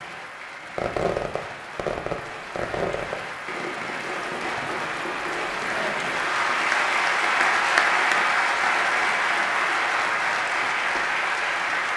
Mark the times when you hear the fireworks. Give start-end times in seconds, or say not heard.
0.7-11.1.